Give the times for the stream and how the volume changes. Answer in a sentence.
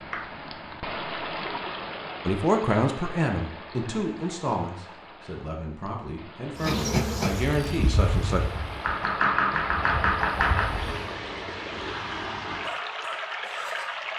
You can hear the stream from 0.0 to 14.1 s, getting quieter then louder.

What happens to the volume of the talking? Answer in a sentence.
The volume of the talking goes down, then up.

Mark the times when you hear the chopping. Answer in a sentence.
The chopping can be heard from 0.1 to 0.8 s and from 8.8 to 10.7 s.